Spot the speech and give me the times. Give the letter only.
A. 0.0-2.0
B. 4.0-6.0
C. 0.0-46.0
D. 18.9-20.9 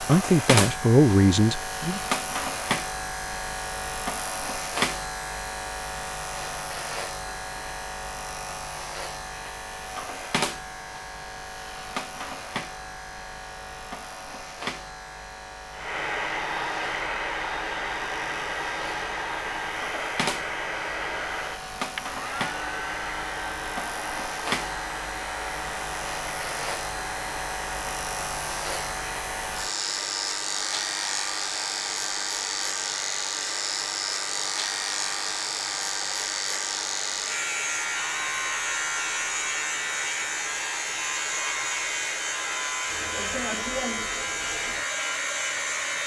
A.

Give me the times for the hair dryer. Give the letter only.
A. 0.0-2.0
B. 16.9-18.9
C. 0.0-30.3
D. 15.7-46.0
D.